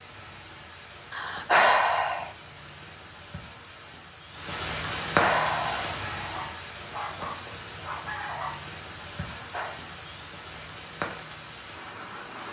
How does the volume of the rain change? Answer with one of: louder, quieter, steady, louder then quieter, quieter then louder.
louder then quieter.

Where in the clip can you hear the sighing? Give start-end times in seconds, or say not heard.
1.1-2.3, 5.0-6.0, 9.3-9.8.